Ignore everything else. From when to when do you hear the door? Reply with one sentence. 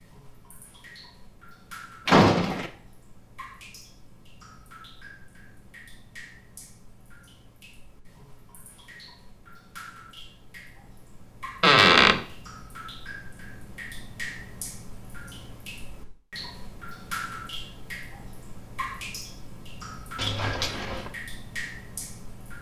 You can hear the door from 2.0 to 2.7 s, from 11.6 to 12.2 s and from 20.1 to 21.1 s.